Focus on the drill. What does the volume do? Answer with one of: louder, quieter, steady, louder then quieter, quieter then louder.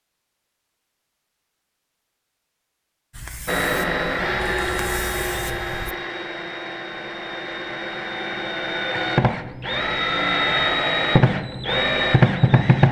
quieter then louder.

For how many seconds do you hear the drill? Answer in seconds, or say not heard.
9 s.